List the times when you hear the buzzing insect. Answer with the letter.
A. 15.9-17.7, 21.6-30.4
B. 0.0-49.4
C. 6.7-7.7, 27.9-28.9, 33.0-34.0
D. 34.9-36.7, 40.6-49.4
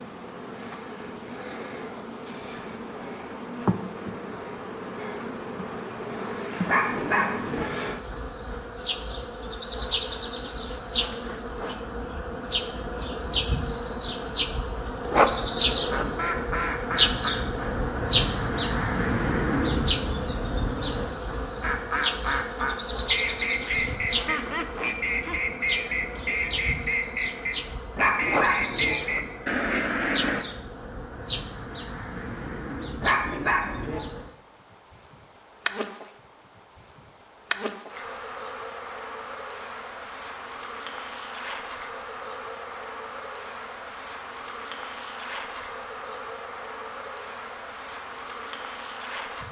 B.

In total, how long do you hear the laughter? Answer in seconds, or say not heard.
2 s.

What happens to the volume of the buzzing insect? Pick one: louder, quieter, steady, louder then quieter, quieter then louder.
louder then quieter.